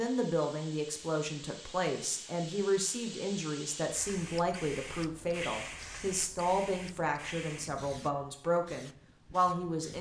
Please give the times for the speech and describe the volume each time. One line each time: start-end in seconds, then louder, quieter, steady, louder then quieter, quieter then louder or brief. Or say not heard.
0.0-9.9 steady.